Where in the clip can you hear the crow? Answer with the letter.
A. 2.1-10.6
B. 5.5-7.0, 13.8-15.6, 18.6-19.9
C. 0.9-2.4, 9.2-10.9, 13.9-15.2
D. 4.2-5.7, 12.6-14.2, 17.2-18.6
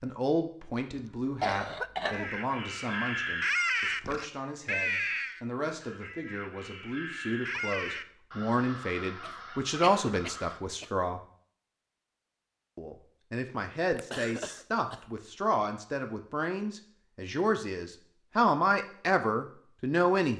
A.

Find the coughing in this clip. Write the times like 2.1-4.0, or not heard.
0.9-2.4, 9.2-10.9, 13.9-15.2.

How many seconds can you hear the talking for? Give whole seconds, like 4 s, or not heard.
19 s.